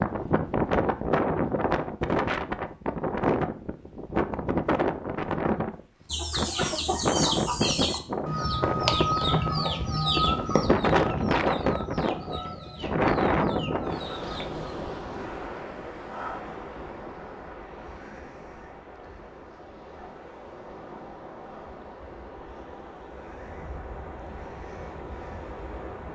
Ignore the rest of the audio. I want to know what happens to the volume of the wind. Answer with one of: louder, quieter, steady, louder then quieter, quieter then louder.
quieter.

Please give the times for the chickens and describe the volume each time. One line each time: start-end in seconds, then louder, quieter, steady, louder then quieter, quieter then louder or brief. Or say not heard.
6.0-14.8 quieter.